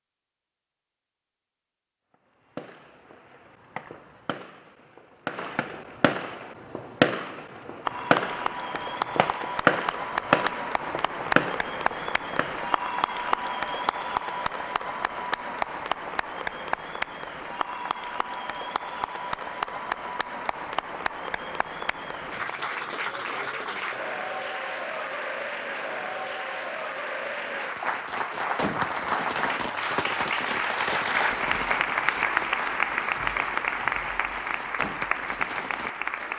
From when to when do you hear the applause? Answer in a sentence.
The applause can be heard from 7.8 to 36.3 s.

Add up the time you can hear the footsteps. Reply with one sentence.
The footsteps can't be heard in this clip.